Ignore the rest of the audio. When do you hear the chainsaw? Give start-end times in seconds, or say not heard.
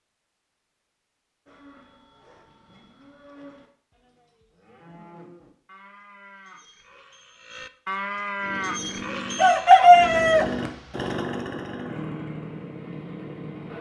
8.3-13.7.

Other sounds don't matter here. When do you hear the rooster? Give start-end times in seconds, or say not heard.
9.4-10.4.